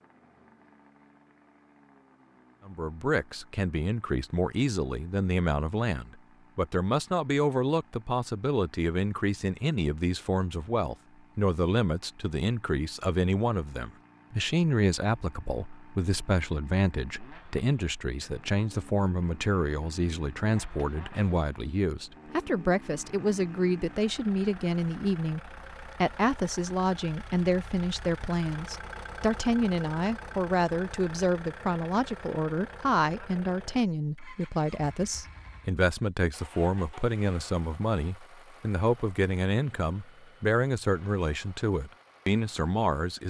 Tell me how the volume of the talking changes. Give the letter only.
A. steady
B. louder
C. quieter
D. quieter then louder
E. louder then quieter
A.